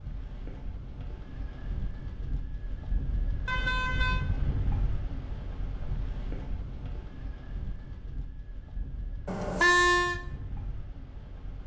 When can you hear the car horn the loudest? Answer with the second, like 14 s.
10 s.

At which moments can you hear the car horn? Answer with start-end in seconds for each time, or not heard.
3.5-4.2, 9.2-10.2.